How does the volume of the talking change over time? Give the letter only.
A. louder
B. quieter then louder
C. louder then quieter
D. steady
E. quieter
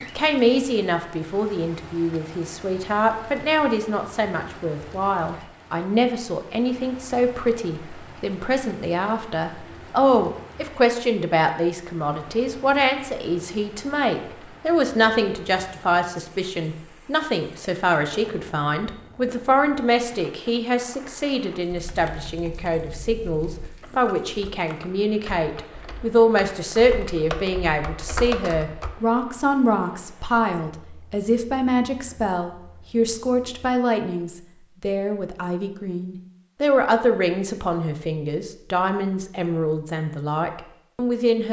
D.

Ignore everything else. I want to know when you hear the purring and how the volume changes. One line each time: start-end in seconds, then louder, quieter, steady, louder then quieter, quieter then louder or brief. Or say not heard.
not heard.